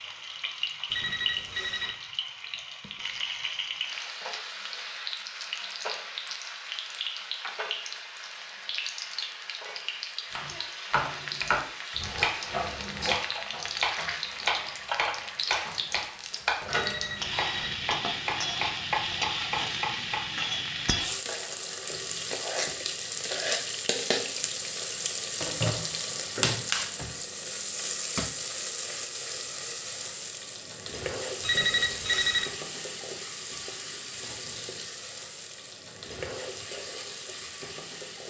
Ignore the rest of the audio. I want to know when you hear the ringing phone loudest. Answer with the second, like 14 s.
32 s.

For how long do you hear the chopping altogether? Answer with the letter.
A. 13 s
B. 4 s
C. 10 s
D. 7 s
C.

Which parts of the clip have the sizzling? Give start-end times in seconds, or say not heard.
0.0-38.2.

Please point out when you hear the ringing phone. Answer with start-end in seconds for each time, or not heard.
0.9-1.9, 16.7-17.7, 31.4-32.5.